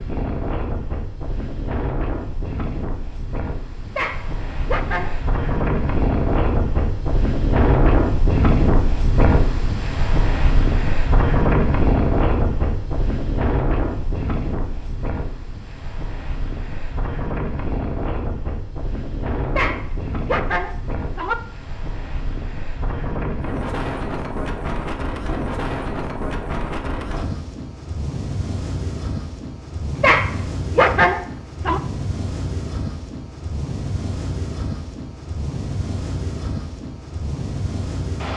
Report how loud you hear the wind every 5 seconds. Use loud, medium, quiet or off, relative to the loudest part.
medium, loud, loud, medium, medium, medium, medium, medium.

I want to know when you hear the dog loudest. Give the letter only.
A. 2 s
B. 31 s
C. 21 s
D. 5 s
B.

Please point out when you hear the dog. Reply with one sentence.
The dog can be heard from 4.0 to 5.2 s, from 19.6 to 21.4 s and from 30.0 to 31.8 s.